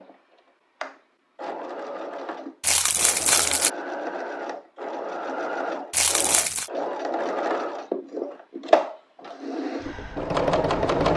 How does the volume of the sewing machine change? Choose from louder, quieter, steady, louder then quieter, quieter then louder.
louder.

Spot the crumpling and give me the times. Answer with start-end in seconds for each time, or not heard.
2.6-3.7, 5.9-6.7.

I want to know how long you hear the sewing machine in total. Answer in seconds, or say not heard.
11 s.